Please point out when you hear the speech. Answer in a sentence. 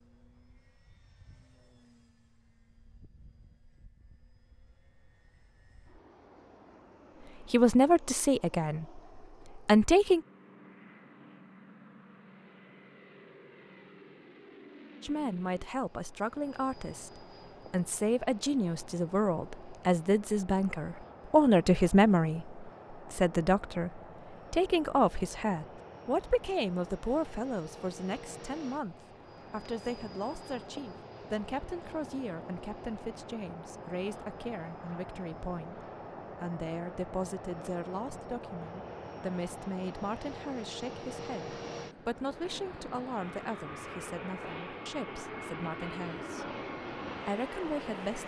The speech can be heard from 7.5 to 10.2 s, from 15.0 to 46.5 s and from 47.2 to 48.2 s.